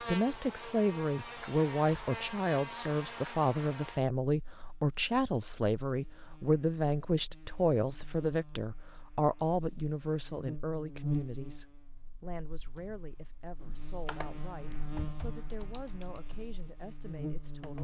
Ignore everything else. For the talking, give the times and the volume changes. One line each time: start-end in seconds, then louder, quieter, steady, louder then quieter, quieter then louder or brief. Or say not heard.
0.0-17.7 quieter.